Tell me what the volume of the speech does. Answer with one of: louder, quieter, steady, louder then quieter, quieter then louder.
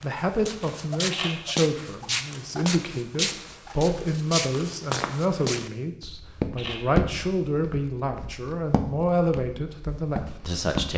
steady.